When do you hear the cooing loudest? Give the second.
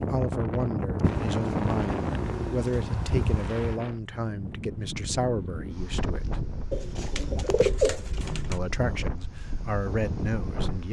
8 s.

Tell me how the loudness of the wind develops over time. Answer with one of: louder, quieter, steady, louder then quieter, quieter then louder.
quieter.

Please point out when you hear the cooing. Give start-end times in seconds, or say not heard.
1.0-3.8, 6.7-8.6.